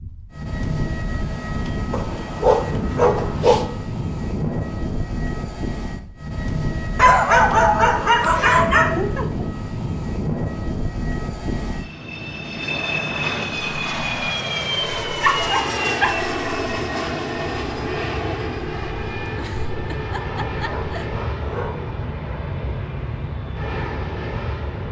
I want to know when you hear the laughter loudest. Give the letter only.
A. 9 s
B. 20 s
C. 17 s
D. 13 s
A.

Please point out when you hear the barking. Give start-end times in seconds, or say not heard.
1.9-3.6, 7.0-8.9, 15.2-16.1, 20.6-22.0.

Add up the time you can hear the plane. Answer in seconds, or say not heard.
25 s.